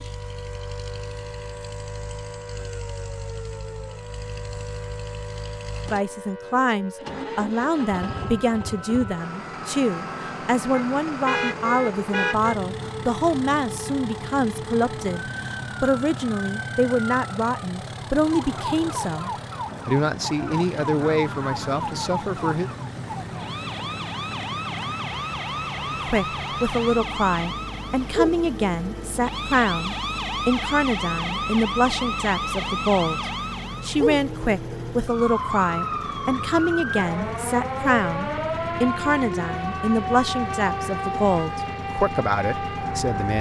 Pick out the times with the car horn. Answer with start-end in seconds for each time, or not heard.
10.7-12.6.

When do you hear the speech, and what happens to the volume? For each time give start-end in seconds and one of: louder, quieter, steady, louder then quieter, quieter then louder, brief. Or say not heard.
5.8-22.7 steady
25.9-43.3 steady.